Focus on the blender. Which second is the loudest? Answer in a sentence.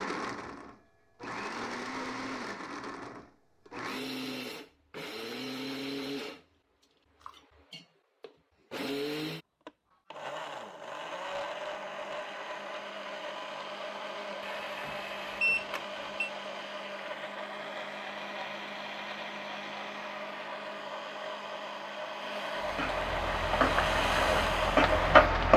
The volume of the blender peaks at 24 seconds.